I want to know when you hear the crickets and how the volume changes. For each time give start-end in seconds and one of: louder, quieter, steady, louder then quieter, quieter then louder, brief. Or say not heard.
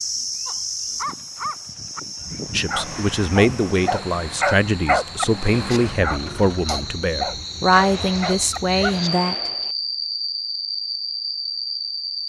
0.0-12.2 quieter then louder.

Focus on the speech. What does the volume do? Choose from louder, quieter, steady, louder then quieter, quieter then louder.
steady.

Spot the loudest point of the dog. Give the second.
5 s.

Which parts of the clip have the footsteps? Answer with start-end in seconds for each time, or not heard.
not heard.